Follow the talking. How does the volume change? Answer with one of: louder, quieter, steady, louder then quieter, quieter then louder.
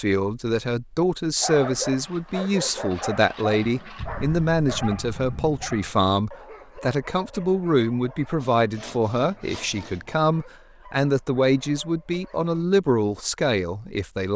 steady.